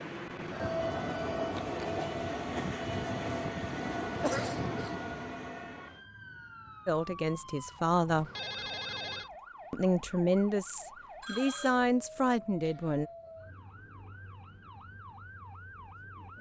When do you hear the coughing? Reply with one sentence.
The coughing can be heard from 4.2 to 5.0 s.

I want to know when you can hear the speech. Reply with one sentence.
You can hear the speech from 6.8 to 8.3 s and from 9.7 to 13.1 s.